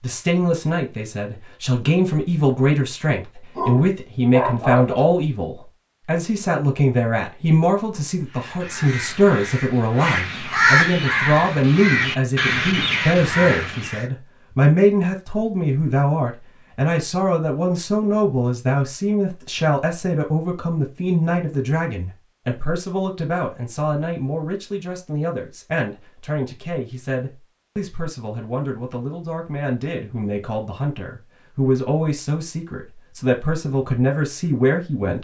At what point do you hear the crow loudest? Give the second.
11 s.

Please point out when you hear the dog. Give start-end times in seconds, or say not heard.
3.5-5.0.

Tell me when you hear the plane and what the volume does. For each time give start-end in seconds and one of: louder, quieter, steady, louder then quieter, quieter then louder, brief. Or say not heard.
not heard.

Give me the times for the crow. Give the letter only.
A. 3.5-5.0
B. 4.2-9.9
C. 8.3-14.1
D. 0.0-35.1
C.